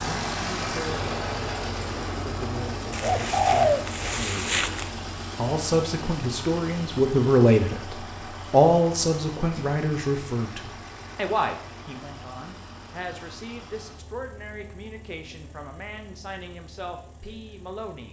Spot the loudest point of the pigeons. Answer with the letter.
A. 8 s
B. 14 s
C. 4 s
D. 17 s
C.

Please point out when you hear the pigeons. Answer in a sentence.
The pigeons can be heard from 2.9 to 4.9 s.